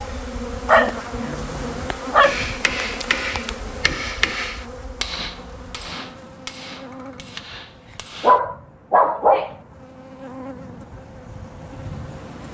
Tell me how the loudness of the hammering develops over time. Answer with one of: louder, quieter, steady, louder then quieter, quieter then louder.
quieter.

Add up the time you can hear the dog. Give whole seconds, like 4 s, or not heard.
3 s.